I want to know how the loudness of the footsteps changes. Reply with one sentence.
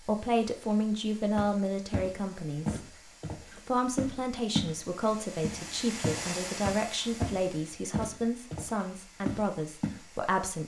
The volume of the footsteps stays about the same.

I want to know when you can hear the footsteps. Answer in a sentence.
The footsteps can be heard from 1.4 to 4.8 s and from 5.4 to 10.0 s.